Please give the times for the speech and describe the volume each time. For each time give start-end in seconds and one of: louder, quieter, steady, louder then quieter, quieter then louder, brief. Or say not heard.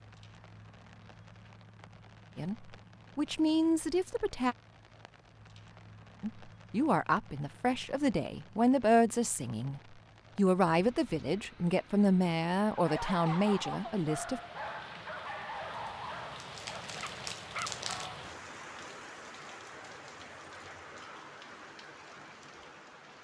2.4-4.5 brief
6.2-14.4 steady.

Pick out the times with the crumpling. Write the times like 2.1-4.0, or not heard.
16.4-18.1.